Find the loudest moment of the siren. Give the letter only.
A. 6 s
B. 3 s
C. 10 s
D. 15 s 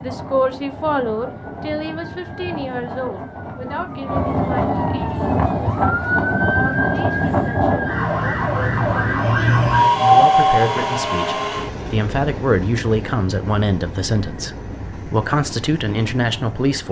C.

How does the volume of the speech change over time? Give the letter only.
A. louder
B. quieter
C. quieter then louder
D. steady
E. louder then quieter
C.